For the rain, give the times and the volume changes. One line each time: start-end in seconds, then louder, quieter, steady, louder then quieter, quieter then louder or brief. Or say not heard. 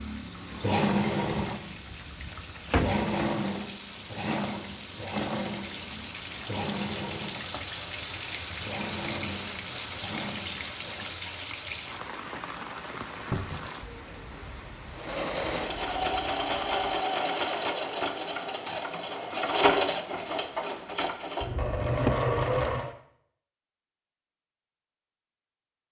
0.0-21.1 louder then quieter.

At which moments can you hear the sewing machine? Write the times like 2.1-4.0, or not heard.
0.0-11.1, 14.9-22.9.